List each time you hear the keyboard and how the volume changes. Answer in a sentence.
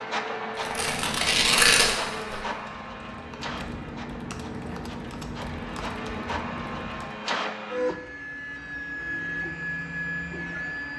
The keyboard can be heard from 0.5 to 7.3 s, getting quieter then louder.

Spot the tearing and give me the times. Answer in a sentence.
The tearing can be heard from 0.6 to 2.4 s.